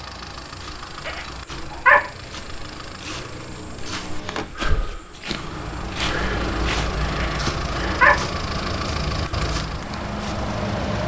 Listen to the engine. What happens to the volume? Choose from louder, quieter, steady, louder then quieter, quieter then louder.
louder.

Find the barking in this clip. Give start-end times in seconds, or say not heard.
1.0-2.0, 7.2-8.2.